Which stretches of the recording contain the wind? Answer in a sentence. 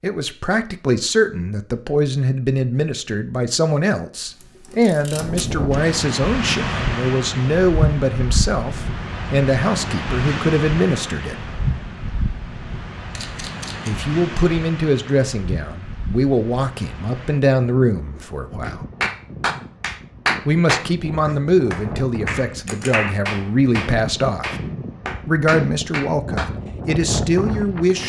The wind can be heard from 5.1 to 28.0 s.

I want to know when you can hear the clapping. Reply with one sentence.
The clapping can be heard from 18.6 to 26.5 s.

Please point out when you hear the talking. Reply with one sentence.
You can hear the talking from 0.0 to 11.3 s, from 13.8 to 18.9 s, from 20.4 to 24.6 s and from 25.2 to 28.0 s.